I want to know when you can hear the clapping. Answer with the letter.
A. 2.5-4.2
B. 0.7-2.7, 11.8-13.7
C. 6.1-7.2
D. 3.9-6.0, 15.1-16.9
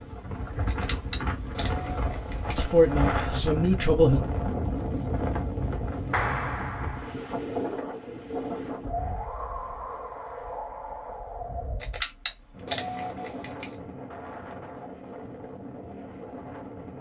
C.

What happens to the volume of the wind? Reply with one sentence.
The volume of the wind goes down.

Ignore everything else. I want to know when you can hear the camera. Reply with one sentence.
The camera can be heard from 0.7 to 2.7 s and from 11.8 to 13.7 s.